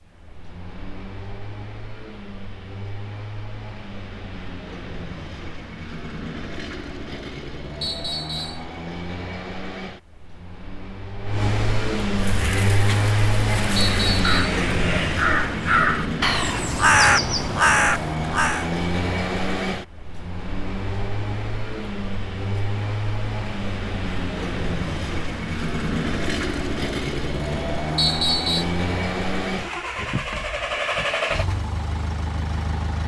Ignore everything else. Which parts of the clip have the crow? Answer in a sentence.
The crow can be heard from 12.2 to 18.7 s.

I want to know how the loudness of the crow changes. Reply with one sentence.
The loudness of the crow goes up.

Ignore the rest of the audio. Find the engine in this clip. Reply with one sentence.
You can hear the engine from 0.0 to 33.0 s.